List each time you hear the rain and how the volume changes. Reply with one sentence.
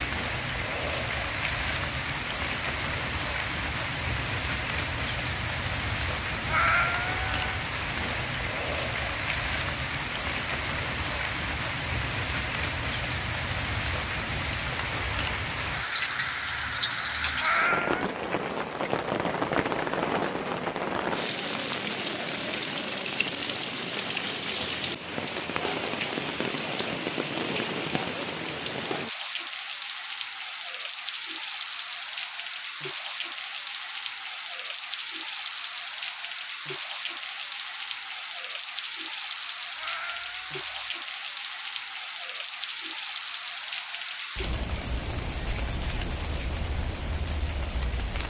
You can hear the rain from 0.0 to 48.2 s, at a steady volume.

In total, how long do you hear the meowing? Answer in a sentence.
The meowing can be heard for 3 seconds in total.